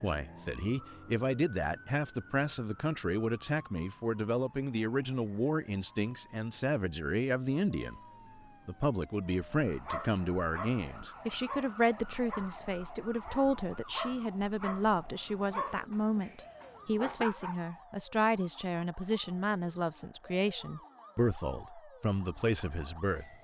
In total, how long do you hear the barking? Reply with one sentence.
You can hear the barking for 8 seconds altogether.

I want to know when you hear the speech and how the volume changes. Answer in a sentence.
You can hear the speech from 0.0 to 8.0 s, at a steady volume; and from 8.7 to 23.3 s, at a steady volume.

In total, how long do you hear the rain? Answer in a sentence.
The rain can't be heard in this clip.